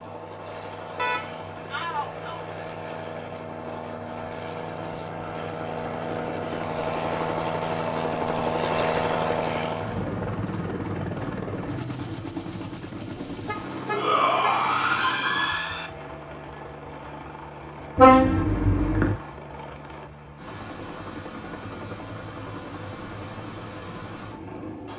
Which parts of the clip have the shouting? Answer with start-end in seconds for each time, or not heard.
1.6-2.4, 13.9-15.9.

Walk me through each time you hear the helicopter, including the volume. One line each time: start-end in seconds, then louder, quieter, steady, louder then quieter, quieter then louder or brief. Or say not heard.
0.0-24.9 louder then quieter.